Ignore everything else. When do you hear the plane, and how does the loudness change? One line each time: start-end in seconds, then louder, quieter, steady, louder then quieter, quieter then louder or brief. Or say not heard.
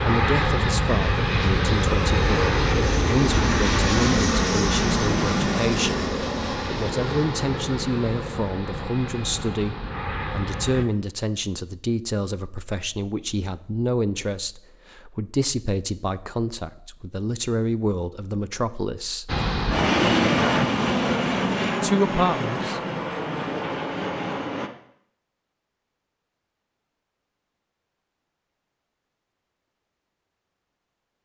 0.0-10.8 quieter
19.2-24.7 quieter.